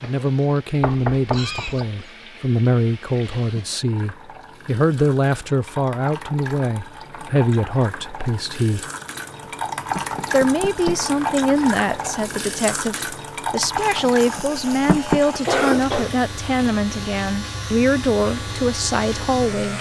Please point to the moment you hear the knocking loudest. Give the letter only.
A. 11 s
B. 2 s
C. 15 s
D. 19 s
C.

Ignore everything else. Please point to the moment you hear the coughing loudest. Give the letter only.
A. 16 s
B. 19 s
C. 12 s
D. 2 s
A.